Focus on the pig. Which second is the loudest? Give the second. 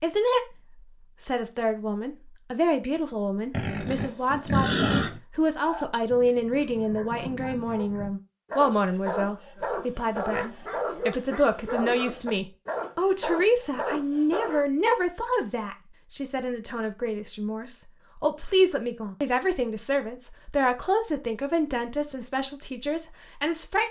5 s.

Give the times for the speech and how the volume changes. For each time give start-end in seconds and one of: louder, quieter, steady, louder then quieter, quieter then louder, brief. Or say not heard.
0.0-0.4 brief
1.2-23.8 steady.